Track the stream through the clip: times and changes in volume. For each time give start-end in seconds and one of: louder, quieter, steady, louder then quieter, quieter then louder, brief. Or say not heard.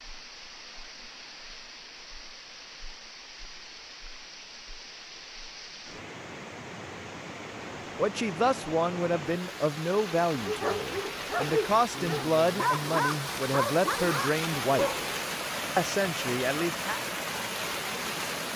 0.0-18.5 louder.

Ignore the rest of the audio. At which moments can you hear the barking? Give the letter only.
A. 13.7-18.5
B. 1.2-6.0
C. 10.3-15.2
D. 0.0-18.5
C.